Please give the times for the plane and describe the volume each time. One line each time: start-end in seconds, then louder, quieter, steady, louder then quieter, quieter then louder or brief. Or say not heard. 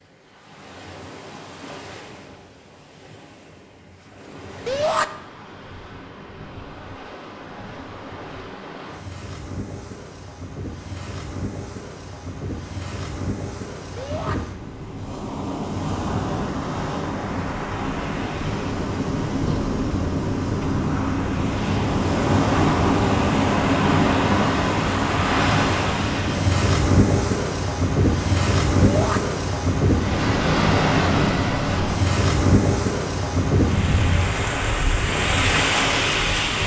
not heard.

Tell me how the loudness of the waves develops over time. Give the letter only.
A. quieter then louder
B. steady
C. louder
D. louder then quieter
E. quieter
C.